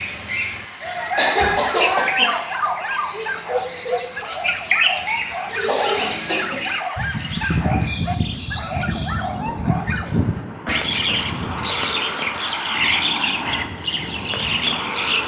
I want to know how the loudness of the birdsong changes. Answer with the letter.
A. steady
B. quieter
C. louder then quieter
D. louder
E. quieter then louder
A.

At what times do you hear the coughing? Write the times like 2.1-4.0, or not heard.
0.8-2.5, 5.7-6.7, 10.7-11.2.